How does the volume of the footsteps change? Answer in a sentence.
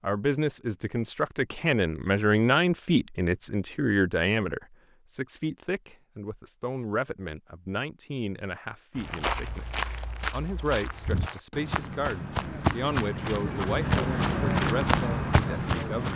The loudness of the footsteps goes up.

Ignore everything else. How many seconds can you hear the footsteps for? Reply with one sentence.
The footsteps can be heard for 7 seconds in total.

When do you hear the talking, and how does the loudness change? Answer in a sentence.
The talking can be heard from 0.0 to 16.1 s, getting quieter.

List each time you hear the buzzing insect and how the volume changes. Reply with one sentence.
You can't hear the buzzing insect here.